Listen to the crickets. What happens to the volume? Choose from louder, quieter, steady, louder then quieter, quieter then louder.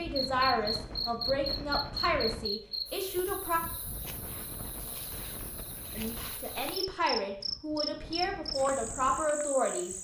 quieter then louder.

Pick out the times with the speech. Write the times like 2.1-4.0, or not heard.
0.0-3.6, 6.0-9.9.